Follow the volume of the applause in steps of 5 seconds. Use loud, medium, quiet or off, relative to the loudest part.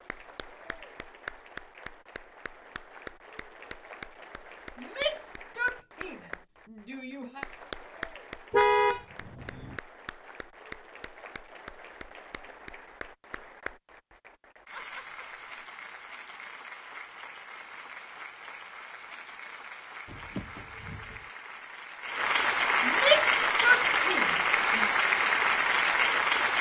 quiet, quiet, quiet, quiet, loud, loud.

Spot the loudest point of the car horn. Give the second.
9 s.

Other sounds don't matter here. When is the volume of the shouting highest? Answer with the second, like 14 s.
23 s.